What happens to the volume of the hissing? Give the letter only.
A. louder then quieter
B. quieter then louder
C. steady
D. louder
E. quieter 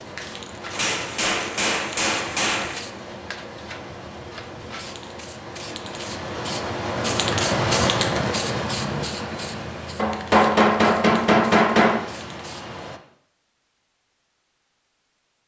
A.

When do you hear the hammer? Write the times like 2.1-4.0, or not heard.
0.7-2.9, 9.9-12.0.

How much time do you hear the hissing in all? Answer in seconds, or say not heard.
13 s.